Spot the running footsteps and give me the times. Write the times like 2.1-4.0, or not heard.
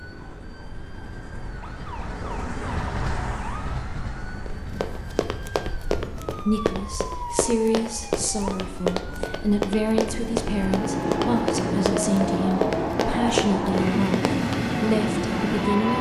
4.5-14.7.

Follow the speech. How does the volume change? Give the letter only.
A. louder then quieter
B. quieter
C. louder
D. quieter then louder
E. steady
E.